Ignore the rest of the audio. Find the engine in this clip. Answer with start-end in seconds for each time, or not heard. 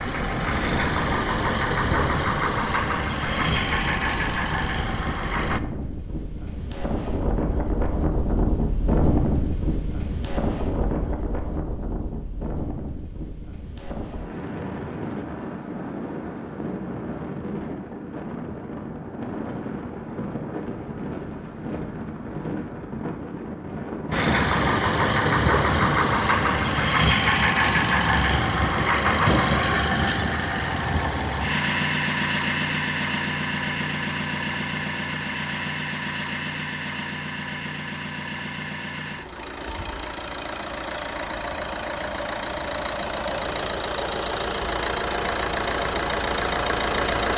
0.0-5.6, 24.1-47.3.